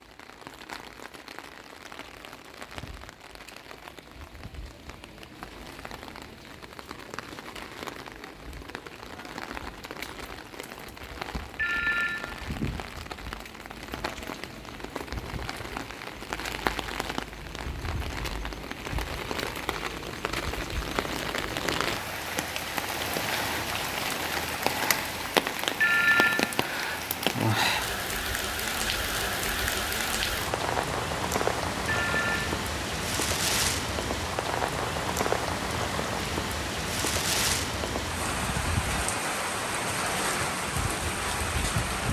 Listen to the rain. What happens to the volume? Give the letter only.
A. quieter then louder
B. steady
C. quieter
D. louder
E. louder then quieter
D.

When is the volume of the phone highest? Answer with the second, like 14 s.
26 s.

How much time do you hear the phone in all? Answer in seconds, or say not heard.
2 s.